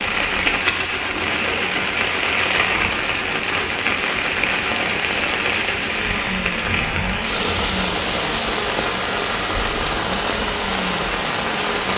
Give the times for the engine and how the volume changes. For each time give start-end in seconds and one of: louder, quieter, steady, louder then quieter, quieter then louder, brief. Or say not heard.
0.0-11.9 steady.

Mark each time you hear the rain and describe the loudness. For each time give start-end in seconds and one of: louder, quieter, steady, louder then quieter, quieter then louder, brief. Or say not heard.
0.0-11.9 steady.